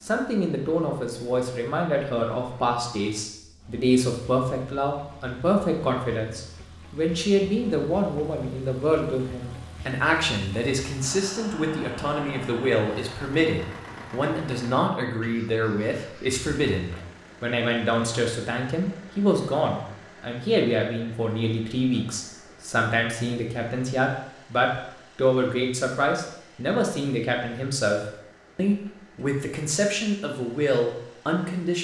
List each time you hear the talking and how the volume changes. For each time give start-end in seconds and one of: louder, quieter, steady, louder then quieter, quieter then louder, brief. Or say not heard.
0.0-31.8 steady.